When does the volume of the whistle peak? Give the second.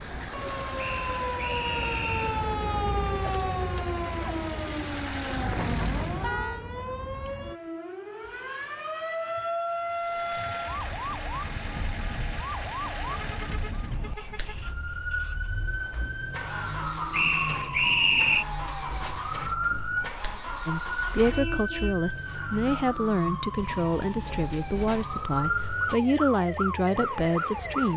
18 s.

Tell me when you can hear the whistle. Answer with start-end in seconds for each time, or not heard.
0.8-2.4, 17.1-18.4.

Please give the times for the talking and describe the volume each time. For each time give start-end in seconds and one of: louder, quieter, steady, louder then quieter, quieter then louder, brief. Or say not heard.
20.6-27.9 steady.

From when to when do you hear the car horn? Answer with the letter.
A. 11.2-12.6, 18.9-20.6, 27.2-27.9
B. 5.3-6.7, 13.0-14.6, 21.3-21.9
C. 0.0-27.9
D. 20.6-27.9
B.